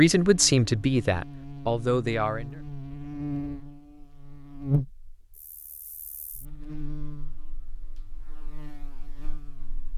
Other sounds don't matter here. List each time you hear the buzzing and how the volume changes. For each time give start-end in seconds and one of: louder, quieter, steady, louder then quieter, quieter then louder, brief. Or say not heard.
0.2-9.9 louder then quieter.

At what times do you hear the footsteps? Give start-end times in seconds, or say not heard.
not heard.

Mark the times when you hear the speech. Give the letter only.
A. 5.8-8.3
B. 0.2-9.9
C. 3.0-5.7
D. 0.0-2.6
D.